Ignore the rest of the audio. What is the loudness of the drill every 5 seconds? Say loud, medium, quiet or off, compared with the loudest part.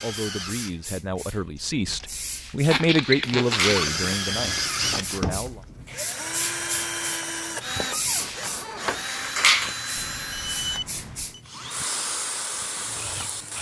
loud, loud, medium.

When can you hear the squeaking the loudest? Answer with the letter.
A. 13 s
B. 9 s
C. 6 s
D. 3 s
D.